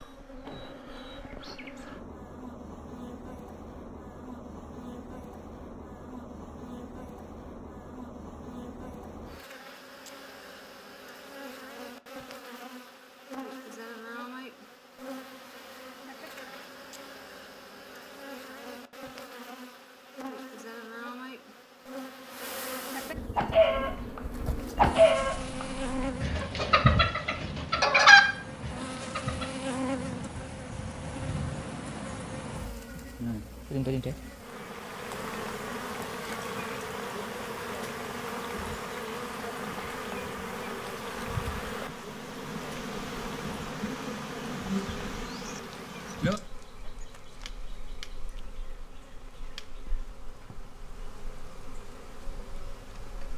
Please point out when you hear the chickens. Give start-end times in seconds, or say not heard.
23.4-29.4.